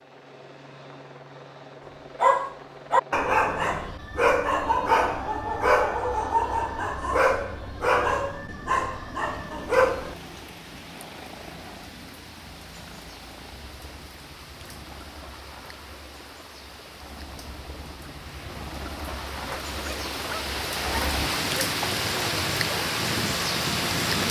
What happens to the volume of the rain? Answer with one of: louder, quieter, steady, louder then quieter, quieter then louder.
louder.